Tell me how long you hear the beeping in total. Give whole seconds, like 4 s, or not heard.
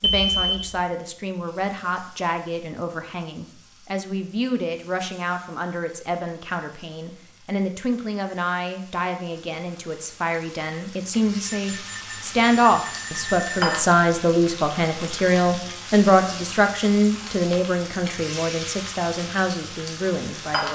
3 s.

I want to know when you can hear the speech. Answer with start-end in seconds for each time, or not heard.
0.0-20.6.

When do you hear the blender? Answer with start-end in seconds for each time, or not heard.
not heard.